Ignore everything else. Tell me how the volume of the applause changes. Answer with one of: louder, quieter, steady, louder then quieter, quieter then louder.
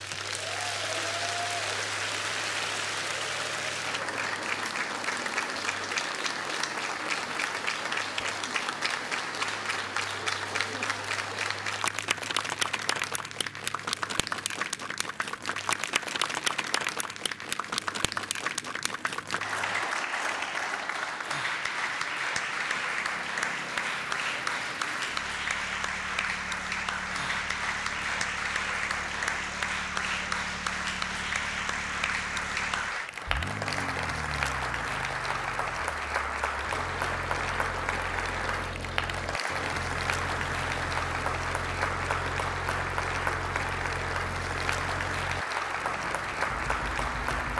steady.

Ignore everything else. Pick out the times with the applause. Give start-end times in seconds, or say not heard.
0.0-47.5.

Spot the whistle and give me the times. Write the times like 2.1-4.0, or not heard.
not heard.